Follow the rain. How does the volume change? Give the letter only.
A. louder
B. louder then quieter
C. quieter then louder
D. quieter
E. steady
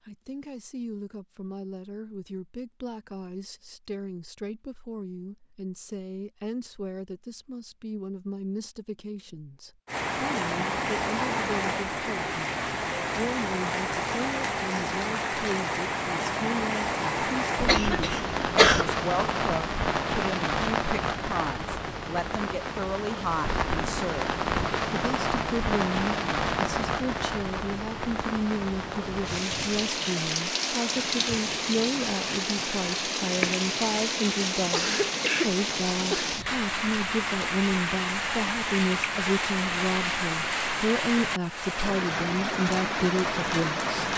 E.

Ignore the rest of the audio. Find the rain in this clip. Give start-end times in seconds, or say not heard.
9.8-44.1.